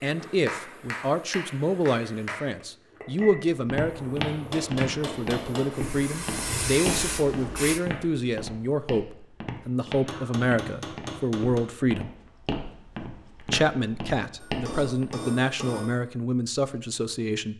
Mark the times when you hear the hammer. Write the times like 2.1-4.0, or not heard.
0.2-2.4, 4.5-5.8, 9.9-11.7, 14.4-16.0.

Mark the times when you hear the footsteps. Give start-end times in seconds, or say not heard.
3.1-15.2.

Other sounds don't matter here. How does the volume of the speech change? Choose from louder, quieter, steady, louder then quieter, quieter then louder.
steady.